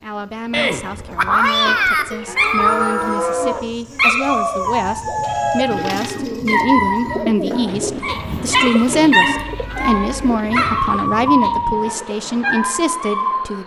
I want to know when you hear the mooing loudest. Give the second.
3 s.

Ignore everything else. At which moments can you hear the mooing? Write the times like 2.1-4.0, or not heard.
2.1-3.6, 6.8-8.6.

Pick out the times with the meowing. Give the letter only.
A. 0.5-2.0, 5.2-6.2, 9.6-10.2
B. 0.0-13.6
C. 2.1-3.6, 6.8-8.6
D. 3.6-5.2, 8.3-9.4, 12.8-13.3
A.